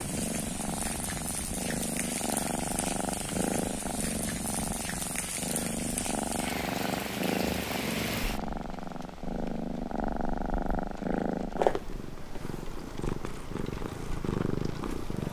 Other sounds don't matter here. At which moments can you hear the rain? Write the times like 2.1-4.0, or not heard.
0.0-15.2.